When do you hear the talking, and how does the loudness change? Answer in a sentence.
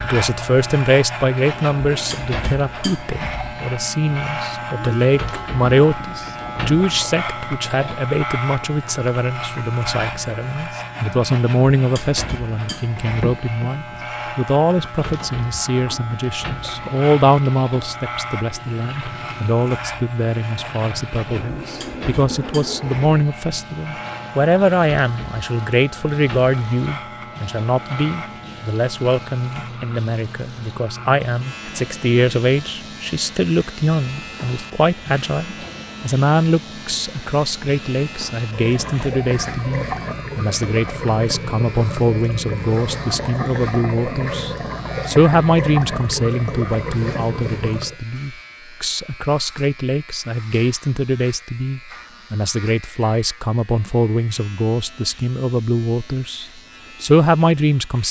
The talking can be heard from 0.0 to 58.0 s, at a steady volume.